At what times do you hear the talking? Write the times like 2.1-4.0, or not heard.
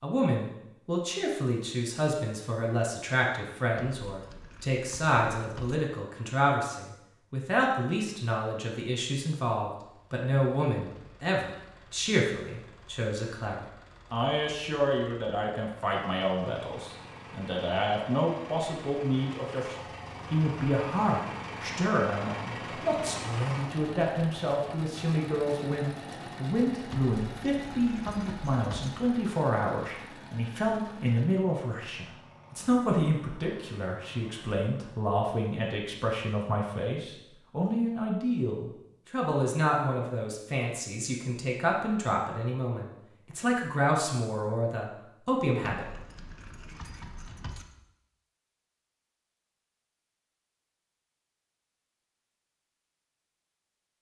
0.0-45.9.